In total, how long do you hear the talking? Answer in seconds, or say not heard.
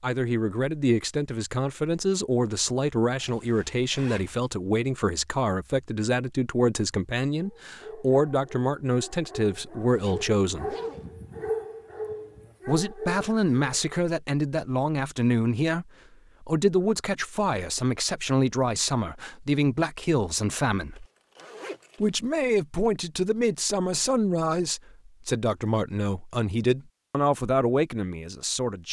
26 s.